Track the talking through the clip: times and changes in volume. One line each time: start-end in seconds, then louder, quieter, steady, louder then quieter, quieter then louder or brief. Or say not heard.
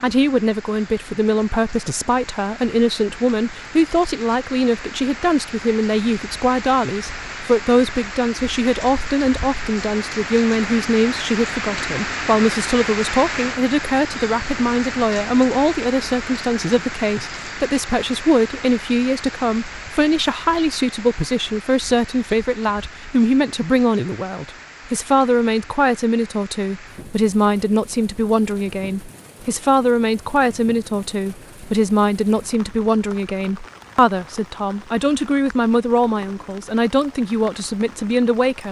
0.0-38.6 steady.